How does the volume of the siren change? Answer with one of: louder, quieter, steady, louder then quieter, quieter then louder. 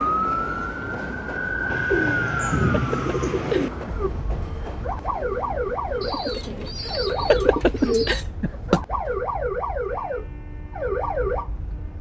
quieter then louder.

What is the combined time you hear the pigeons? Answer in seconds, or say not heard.
4 s.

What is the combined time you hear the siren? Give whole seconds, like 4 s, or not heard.
12 s.